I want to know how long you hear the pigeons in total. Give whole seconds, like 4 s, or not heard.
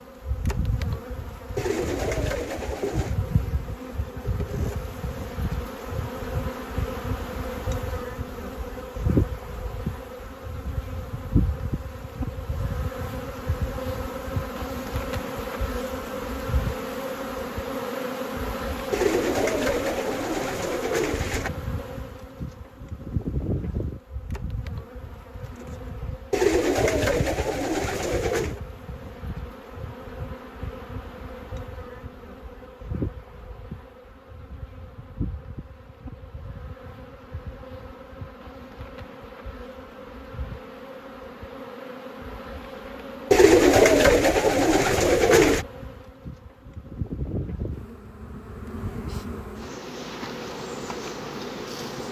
9 s.